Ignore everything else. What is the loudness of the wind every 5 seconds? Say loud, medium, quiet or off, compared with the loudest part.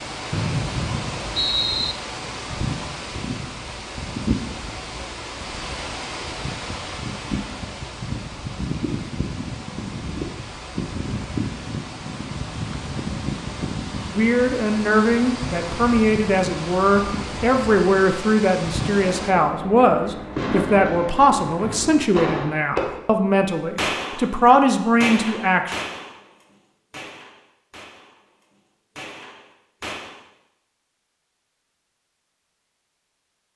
loud, loud, loud, loud, off, off, off.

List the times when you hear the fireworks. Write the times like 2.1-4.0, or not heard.
18.9-30.2.